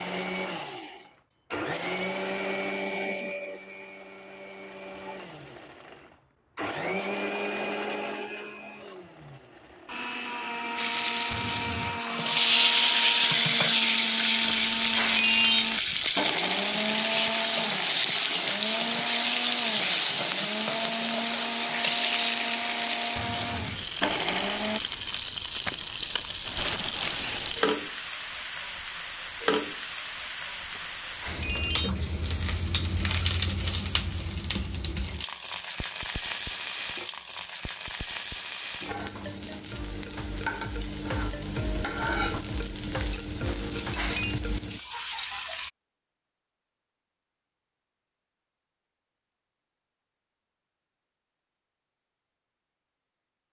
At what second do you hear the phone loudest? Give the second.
15 s.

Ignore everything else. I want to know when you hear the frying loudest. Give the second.
13 s.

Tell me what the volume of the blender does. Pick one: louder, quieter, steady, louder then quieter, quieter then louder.
steady.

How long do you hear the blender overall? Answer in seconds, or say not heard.
25 s.